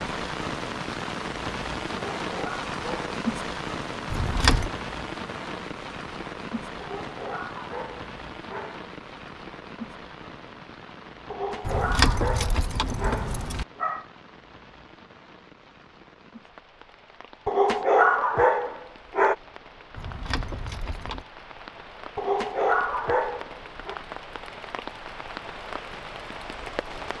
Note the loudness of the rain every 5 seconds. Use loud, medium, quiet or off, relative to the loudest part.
loud, medium, quiet, quiet, medium, medium.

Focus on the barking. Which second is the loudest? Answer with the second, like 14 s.
18 s.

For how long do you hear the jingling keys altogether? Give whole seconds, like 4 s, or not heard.
4 s.